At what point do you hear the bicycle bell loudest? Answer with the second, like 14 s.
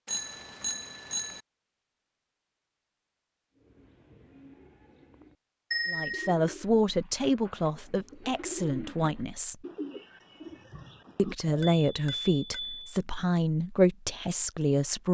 6 s.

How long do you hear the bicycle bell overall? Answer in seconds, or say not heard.
3 s.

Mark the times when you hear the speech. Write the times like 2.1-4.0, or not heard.
5.8-9.6, 11.2-15.0.